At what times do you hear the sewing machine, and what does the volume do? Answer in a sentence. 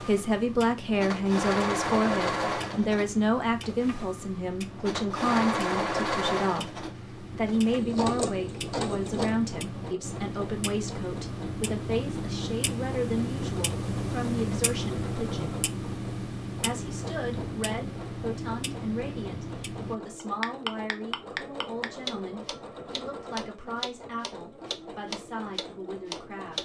You can hear the sewing machine from 0.0 to 26.5 s, getting quieter.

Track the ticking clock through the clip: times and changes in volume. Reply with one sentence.
The ticking clock can be heard from 0.0 to 26.5 s, getting louder.